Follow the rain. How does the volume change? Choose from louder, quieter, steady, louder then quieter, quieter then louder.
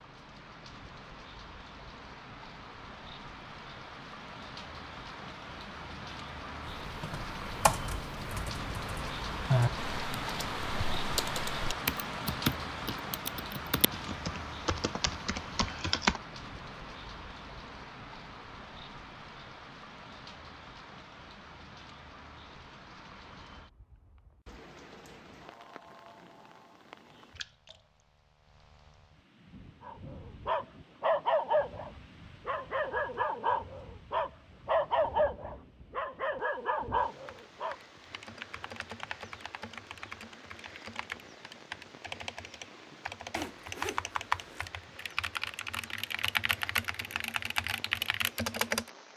quieter.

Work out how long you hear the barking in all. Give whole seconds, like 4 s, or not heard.
8 s.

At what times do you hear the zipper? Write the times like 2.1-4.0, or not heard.
43.4-44.7.